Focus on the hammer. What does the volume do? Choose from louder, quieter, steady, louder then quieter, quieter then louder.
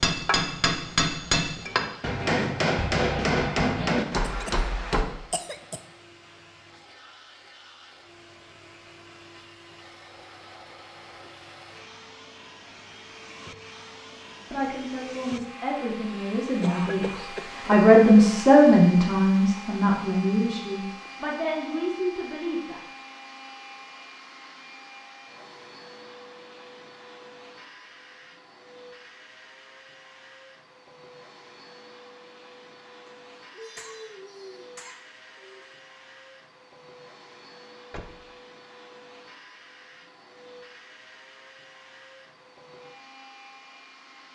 steady.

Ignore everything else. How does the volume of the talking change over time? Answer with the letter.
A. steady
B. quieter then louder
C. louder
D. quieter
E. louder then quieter
E.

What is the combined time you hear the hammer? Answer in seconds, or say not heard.
5 s.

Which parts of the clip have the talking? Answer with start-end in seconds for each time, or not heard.
14.3-22.8.